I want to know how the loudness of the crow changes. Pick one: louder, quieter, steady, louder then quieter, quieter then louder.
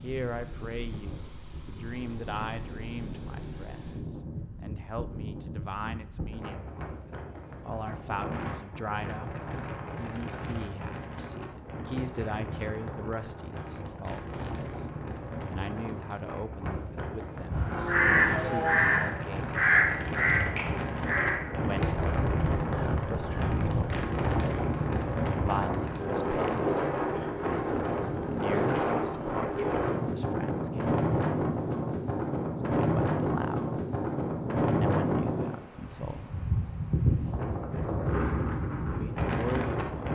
quieter.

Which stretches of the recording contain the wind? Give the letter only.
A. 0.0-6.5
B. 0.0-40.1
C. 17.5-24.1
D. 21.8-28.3
B.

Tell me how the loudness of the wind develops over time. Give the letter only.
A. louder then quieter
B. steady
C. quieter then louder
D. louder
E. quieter
D.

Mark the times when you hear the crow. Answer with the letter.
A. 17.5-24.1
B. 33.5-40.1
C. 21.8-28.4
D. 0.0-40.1
A.